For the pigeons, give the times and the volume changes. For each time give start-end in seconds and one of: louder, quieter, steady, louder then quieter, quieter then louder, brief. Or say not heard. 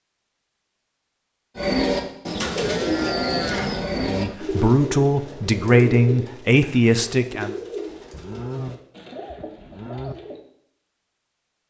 1.6-10.4 quieter.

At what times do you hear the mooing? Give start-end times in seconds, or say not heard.
2.4-4.3, 8.1-10.2.